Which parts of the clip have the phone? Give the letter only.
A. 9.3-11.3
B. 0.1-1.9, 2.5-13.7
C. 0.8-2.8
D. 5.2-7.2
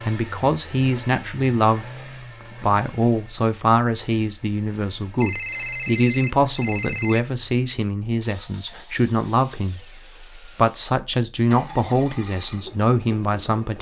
D.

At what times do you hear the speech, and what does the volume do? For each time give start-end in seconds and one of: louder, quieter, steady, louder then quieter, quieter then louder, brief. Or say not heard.
0.1-1.9 brief
2.5-13.7 steady.